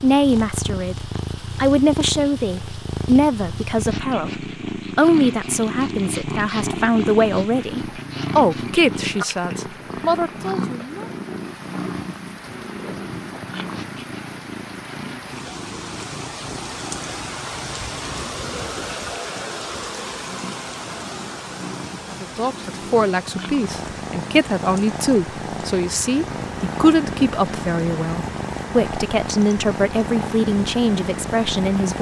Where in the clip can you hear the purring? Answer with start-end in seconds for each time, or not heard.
0.0-31.9.